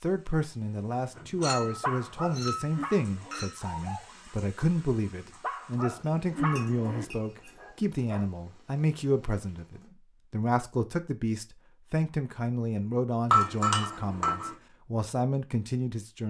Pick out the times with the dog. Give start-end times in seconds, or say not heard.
1.1-8.2.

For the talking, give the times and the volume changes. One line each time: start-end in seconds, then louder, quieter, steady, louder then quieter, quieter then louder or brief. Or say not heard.
0.0-16.2 steady.